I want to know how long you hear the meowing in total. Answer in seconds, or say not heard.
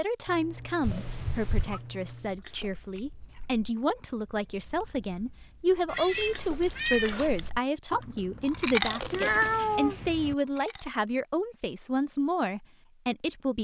4 s.